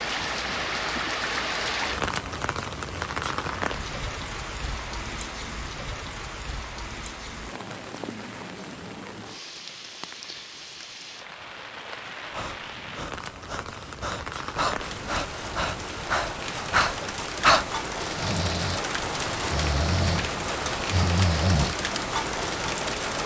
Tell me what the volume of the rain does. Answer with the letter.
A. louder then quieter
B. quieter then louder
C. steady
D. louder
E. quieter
B.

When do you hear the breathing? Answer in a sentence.
The breathing can be heard from 12.3 to 21.8 s.